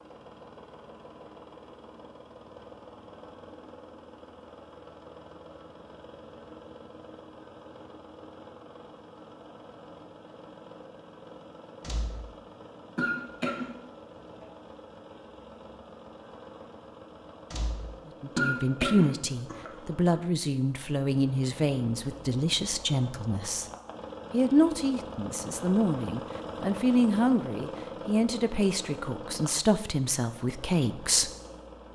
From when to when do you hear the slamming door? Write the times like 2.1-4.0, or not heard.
11.8-12.3, 17.5-18.0.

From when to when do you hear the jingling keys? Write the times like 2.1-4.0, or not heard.
not heard.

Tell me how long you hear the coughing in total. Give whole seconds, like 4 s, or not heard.
2 s.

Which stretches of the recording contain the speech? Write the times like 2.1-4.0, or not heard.
18.2-23.6, 24.3-31.3.